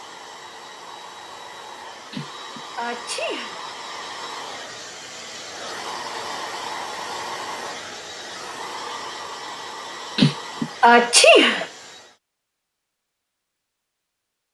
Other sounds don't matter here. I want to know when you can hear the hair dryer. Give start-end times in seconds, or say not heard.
0.0-12.2.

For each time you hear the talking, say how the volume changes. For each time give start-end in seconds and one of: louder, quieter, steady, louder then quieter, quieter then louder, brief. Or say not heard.
not heard.